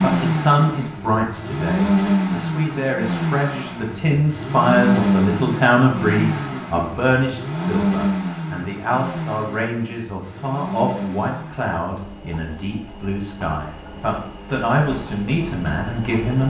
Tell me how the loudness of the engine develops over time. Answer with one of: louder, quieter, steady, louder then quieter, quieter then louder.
quieter.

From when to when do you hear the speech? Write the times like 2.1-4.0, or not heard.
0.0-16.4.